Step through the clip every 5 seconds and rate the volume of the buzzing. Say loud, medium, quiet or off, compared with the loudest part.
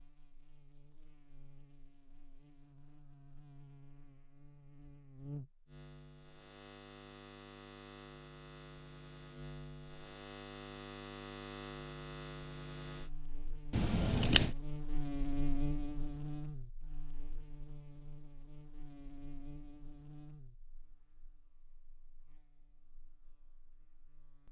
quiet, medium, loud, loud, quiet.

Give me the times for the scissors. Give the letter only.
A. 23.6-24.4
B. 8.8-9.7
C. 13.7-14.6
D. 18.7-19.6
C.